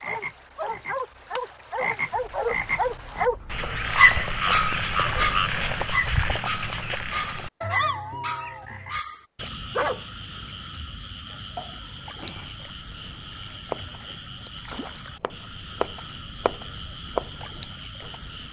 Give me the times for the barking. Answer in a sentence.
You can hear the barking from 0.0 to 11.2 s.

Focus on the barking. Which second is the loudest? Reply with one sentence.
The loudest moment of the barking is at 4 seconds.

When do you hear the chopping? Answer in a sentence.
You can hear the chopping from 11.3 to 18.4 s.